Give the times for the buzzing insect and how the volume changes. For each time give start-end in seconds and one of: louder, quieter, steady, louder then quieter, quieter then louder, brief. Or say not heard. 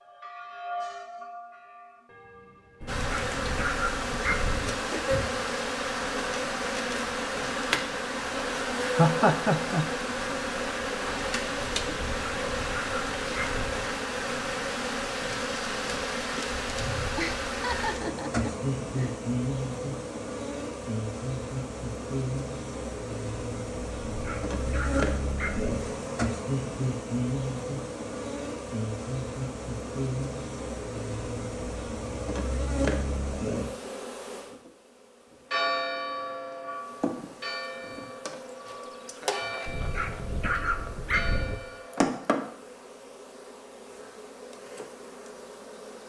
2.9-46.0 quieter.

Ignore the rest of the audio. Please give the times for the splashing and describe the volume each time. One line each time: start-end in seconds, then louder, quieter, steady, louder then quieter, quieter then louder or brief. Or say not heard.
not heard.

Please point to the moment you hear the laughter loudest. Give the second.
9 s.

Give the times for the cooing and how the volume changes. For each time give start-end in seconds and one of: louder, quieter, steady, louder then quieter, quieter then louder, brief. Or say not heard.
not heard.